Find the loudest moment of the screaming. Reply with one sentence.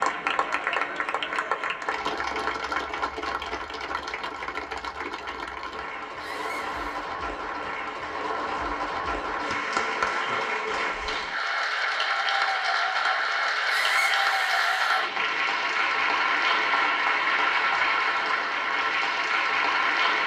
The loudest moment of the screaming is at 14 seconds.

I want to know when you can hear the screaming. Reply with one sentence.
The screaming can be heard from 6.2 to 7.0 s and from 13.7 to 15.0 s.